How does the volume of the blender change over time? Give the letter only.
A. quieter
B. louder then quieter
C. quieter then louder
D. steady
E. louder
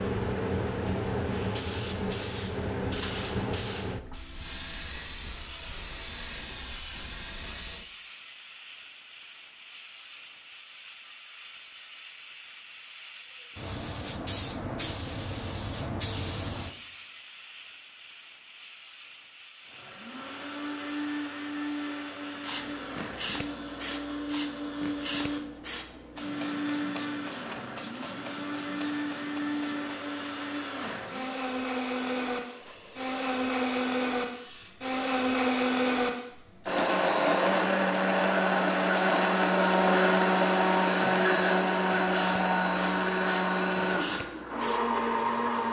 E.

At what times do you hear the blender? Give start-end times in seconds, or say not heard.
19.6-45.6.